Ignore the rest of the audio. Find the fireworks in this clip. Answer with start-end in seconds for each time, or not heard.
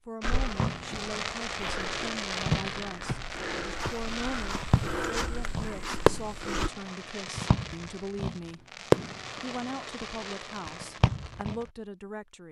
0.2-11.7.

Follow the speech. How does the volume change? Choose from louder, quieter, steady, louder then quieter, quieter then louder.
steady.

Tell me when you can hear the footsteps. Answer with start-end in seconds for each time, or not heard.
0.2-6.7.